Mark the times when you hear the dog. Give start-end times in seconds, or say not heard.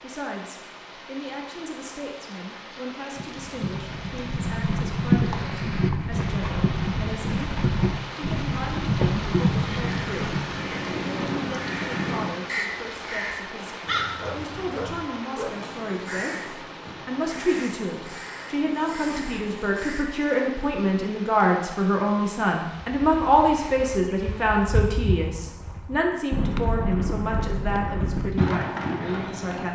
14.2-15.7.